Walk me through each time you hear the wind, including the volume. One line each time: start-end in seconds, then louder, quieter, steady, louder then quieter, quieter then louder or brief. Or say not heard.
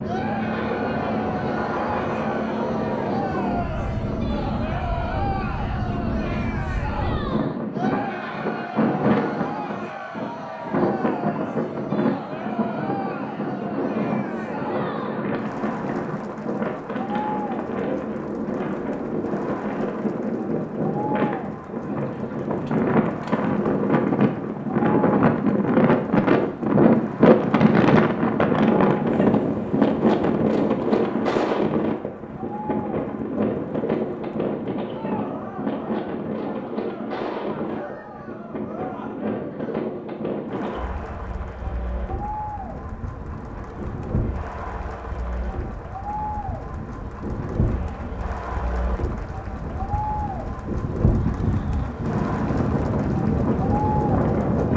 0.0-54.7 louder then quieter.